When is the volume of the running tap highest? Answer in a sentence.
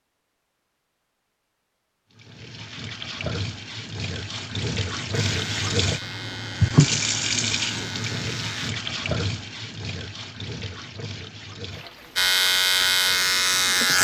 The loudest moment of the running tap is at 7 seconds.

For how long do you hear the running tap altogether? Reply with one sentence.
You can hear the running tap for 12 seconds altogether.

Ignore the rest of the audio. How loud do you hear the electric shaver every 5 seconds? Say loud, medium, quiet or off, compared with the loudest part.
off, quiet, loud.